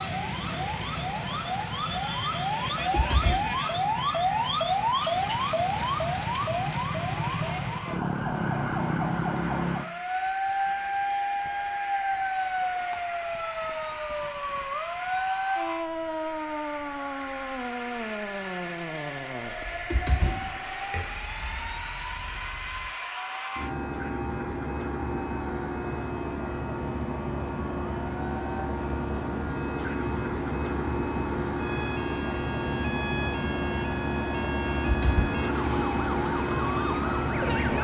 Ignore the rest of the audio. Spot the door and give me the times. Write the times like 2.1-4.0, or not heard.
2.8-3.5, 19.9-21.1, 34.9-35.4.